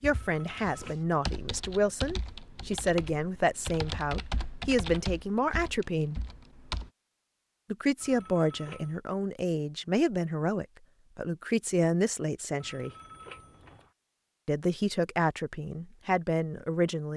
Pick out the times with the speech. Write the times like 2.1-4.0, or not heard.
0.0-6.2, 7.7-12.9, 14.4-17.1.